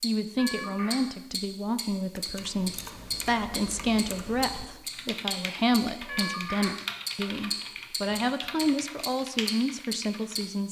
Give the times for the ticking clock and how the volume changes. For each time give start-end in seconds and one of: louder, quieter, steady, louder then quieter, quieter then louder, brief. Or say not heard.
0.0-10.4 steady.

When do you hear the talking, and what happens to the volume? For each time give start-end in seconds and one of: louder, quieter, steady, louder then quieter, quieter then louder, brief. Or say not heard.
0.0-10.6 steady.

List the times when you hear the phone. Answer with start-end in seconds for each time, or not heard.
0.3-1.0, 6.0-6.7.